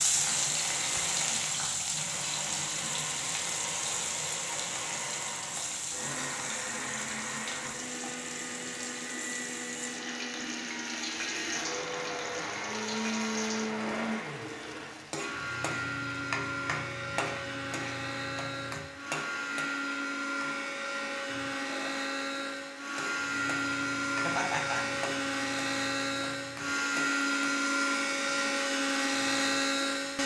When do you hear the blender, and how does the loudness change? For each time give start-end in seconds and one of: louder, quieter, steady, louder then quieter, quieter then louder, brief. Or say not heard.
0.1-30.2 louder.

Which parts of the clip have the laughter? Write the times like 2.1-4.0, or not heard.
24.2-24.9.